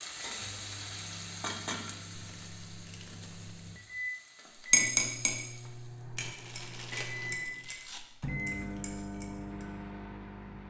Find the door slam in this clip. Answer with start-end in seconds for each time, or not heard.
not heard.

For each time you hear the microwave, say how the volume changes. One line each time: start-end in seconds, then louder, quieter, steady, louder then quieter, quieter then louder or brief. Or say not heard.
0.1-10.6 louder.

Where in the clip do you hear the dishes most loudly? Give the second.
5 s.